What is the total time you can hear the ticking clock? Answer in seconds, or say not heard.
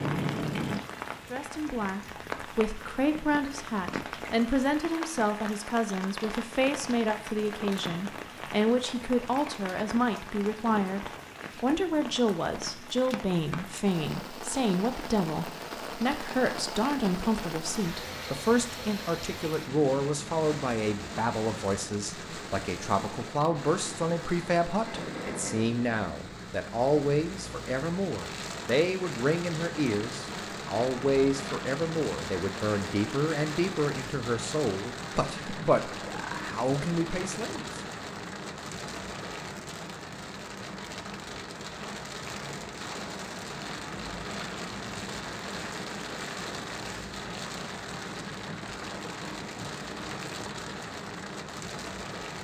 not heard.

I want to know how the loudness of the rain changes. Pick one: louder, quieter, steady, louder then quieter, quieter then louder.
steady.